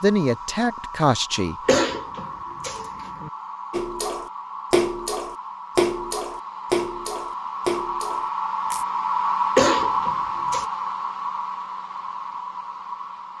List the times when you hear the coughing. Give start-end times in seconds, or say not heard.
1.6-3.3, 9.6-10.7.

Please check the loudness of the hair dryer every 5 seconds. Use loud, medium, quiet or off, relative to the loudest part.
medium, loud, loud.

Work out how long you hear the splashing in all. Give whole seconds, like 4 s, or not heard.
5 s.